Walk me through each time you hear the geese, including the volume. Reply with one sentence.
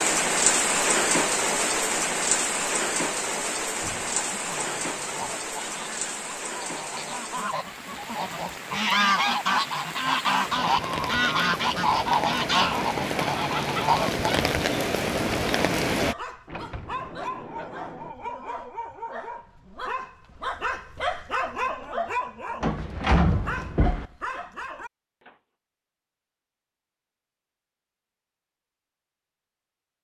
You can hear the geese from 4.1 to 14.5 s, getting louder.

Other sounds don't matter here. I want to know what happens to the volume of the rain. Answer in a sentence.
The loudness of the rain goes down, then up.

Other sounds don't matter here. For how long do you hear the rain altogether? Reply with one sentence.
The rain can be heard for 16 seconds in total.